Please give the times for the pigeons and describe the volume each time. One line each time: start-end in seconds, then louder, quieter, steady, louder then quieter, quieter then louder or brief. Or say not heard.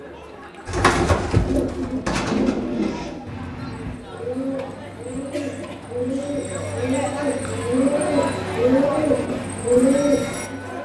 0.7-10.5 quieter then louder.